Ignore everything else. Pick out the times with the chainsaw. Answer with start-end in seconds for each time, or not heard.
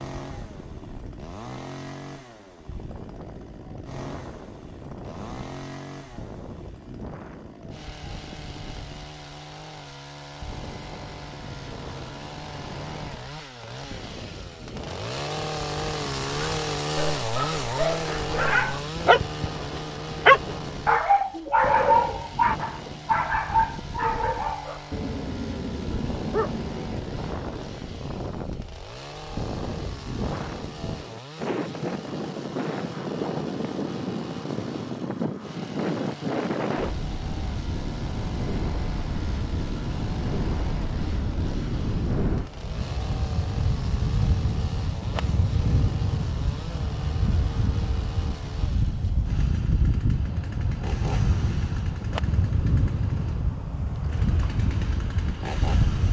0.0-56.0.